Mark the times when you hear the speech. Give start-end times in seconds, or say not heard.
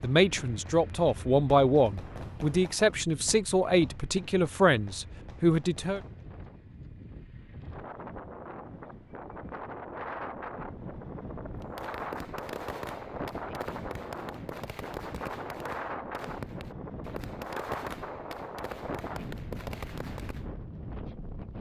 0.0-6.0.